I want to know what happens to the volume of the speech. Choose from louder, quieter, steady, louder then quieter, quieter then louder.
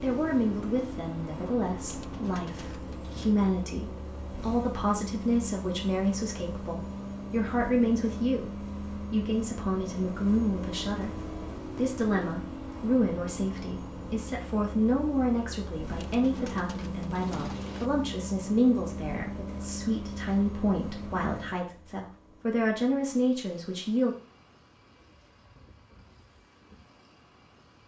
steady.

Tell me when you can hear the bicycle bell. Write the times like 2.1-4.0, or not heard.
not heard.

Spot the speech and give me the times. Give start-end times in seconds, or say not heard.
0.0-24.1.